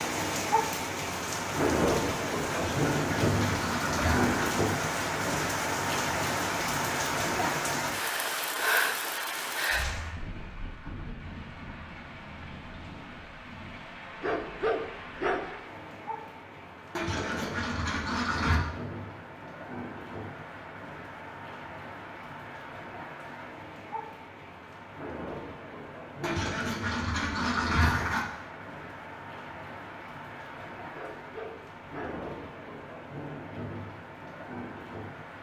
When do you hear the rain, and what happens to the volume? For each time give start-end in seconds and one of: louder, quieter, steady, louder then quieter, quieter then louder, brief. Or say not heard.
0.0-35.3 quieter.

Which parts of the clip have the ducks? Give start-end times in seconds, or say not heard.
2.5-4.5, 16.9-18.6, 26.2-28.2.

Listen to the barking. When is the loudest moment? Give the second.
15 s.